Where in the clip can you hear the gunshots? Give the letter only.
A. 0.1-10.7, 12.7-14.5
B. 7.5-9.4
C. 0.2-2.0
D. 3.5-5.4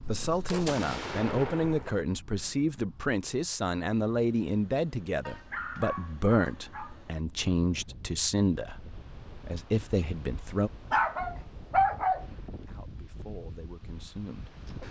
C.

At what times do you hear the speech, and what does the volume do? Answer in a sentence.
You can hear the speech from 0.1 to 10.7 s, at a steady volume; and briefly from 12.7 to 14.5 s.